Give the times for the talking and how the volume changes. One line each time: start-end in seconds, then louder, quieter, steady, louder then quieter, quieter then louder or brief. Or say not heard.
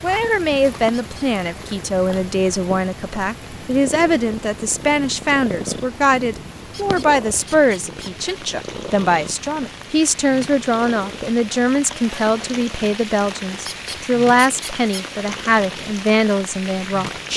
0.0-17.3 steady.